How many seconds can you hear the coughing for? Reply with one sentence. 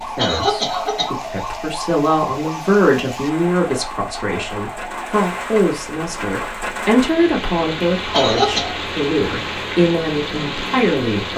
You can hear the coughing for 2 seconds altogether.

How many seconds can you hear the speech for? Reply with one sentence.
The speech can be heard for 11 seconds in total.